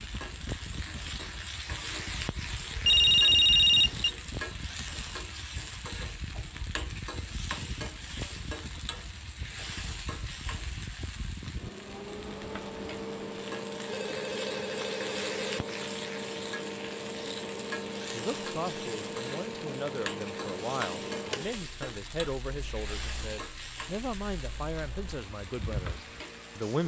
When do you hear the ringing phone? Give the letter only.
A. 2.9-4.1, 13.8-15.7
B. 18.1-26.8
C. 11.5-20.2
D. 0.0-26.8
A.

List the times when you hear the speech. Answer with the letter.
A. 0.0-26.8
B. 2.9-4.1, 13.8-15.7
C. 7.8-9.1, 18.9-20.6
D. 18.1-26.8
D.